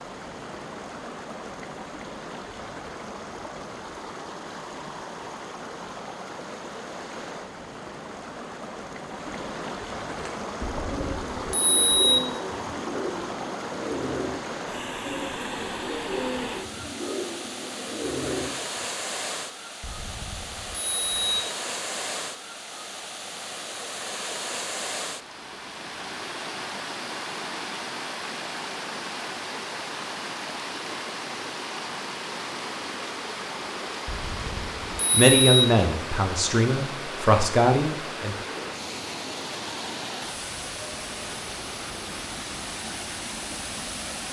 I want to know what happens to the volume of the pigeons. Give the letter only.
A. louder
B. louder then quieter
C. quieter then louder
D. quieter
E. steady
E.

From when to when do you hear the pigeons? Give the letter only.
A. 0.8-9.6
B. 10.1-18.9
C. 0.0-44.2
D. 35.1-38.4
B.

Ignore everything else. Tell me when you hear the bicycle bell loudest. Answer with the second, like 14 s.
12 s.